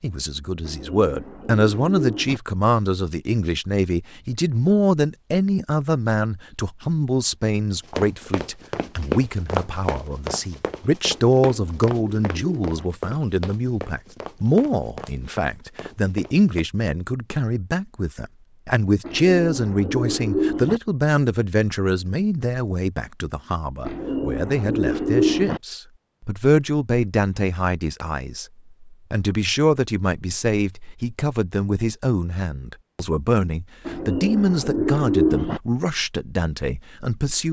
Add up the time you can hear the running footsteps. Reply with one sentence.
The running footsteps can be heard for 9 seconds in total.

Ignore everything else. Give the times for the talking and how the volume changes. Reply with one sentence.
The talking can be heard from 0.0 to 37.4 s, at a steady volume.